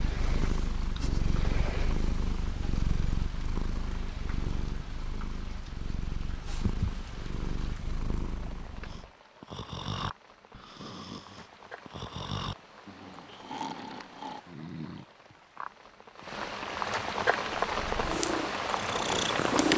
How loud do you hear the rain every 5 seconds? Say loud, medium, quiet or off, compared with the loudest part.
quiet, quiet, quiet, loud.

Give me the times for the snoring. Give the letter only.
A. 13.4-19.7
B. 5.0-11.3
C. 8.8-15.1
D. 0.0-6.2
C.